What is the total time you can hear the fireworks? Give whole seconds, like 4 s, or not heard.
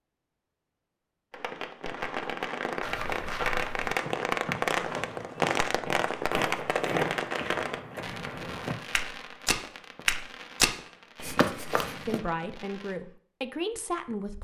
12 s.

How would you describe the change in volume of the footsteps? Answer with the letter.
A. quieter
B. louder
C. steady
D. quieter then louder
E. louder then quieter
B.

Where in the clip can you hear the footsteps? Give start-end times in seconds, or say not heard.
2.8-12.2.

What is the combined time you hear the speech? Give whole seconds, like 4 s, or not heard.
2 s.